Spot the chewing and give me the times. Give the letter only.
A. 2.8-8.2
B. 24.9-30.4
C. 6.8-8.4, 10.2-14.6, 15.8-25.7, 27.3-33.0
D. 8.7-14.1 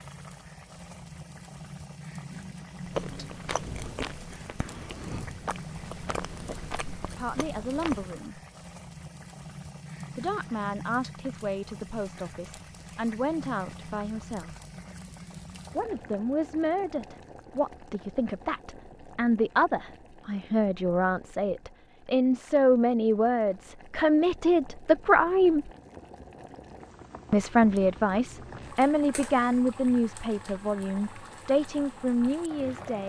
A.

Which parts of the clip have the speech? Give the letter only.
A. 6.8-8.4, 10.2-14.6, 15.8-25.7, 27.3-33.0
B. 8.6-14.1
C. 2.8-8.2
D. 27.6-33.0
A.